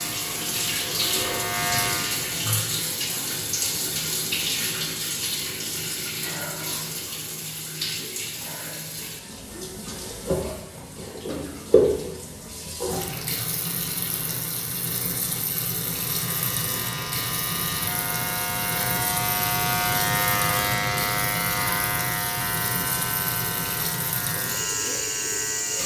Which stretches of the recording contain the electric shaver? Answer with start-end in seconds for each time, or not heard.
0.0-2.4, 15.9-25.8.